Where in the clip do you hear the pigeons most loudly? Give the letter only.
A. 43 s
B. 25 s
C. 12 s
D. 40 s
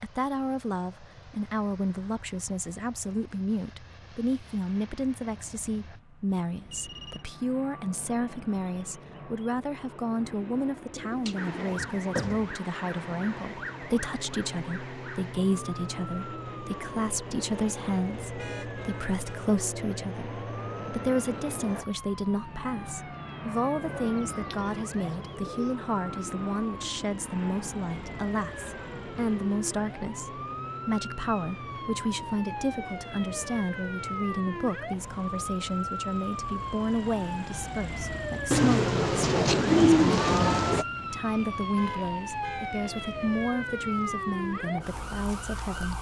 D.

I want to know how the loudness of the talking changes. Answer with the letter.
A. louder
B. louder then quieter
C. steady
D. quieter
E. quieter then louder
C.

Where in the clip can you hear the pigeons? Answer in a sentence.
The pigeons can be heard from 10.9 to 12.6 s, from 23.9 to 25.8 s and from 38.5 to 40.9 s.